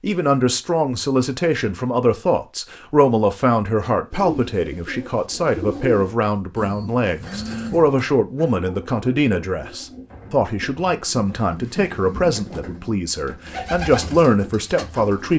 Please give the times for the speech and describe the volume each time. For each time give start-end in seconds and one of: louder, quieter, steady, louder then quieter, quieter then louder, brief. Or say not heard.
0.0-15.3 steady.